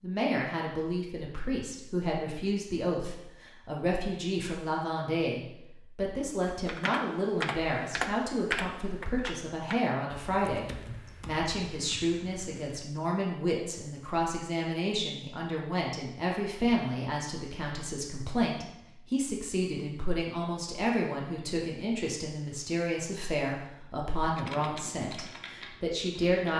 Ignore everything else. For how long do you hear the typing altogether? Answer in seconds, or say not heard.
9 s.